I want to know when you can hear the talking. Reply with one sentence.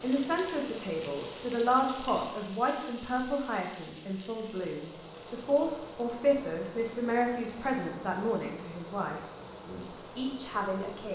The talking can be heard from 0.0 to 11.1 s.